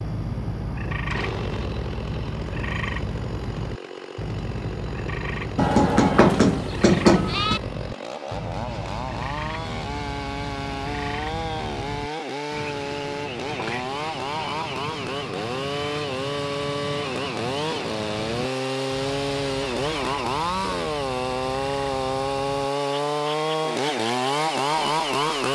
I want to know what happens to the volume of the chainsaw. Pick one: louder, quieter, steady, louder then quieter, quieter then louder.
louder.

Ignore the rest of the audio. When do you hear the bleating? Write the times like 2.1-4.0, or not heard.
5.5-7.6.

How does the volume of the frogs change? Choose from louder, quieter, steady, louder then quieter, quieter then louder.
quieter.